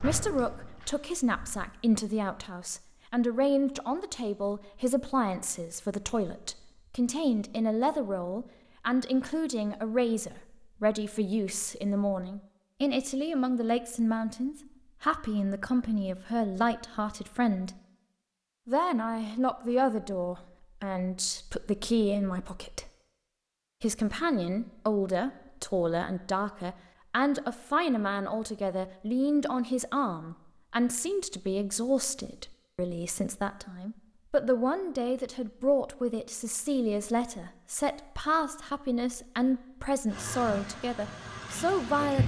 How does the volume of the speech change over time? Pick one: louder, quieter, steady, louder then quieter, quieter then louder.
steady.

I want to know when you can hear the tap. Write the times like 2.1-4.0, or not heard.
0.0-1.7, 40.1-42.2.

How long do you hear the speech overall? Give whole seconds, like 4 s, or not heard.
40 s.